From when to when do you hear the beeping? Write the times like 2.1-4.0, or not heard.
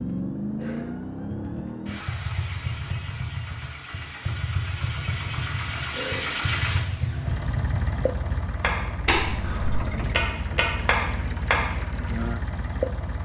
not heard.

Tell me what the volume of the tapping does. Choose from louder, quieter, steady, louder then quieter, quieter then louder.
louder.